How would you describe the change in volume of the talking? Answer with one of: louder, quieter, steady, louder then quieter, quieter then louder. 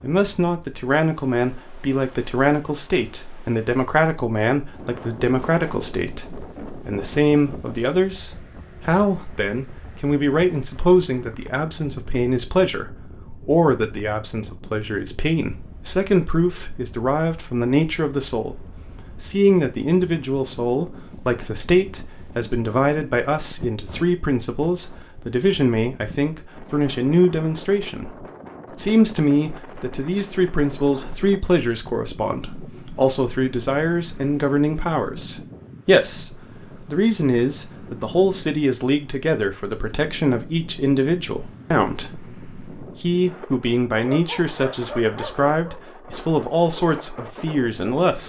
steady.